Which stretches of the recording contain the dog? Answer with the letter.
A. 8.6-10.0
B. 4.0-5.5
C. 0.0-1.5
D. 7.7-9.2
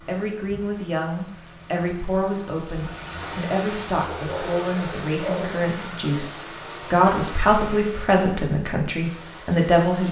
B.